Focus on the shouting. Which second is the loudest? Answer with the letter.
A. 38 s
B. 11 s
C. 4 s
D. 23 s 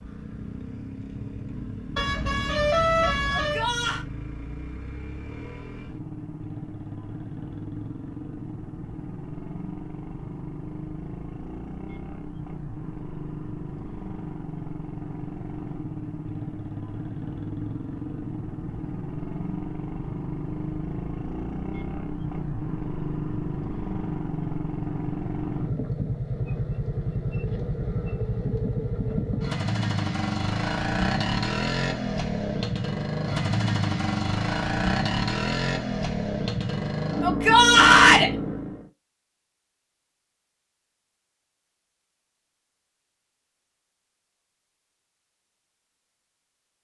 A.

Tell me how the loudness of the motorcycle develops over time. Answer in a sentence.
The volume of the motorcycle goes up.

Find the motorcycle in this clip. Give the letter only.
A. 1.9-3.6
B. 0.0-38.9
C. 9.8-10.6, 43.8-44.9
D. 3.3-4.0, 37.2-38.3
B.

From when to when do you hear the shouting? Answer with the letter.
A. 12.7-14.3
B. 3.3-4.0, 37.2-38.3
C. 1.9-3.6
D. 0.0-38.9
B.